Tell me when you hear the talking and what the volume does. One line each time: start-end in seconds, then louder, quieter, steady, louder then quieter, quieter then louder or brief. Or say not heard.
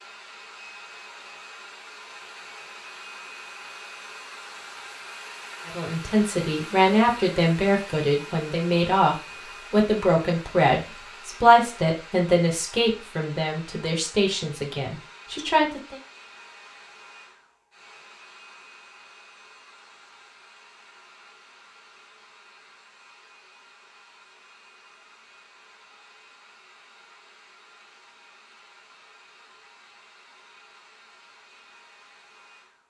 5.7-15.9 quieter.